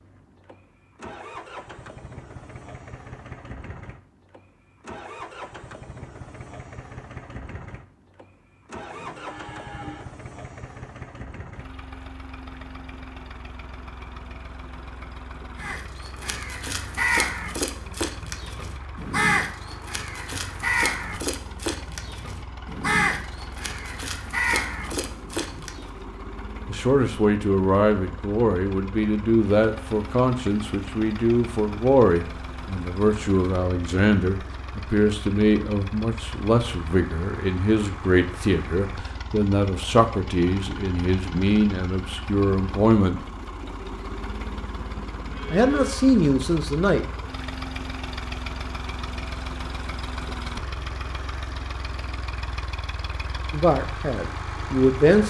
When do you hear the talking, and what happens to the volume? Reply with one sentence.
You can hear the talking from 26.6 to 43.2 s, at a steady volume; briefly from 45.5 to 47.0 s; and briefly from 53.5 to 55.2 s.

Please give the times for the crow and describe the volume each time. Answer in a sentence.
You can hear the crow from 15.6 to 25.9 s, at a steady volume.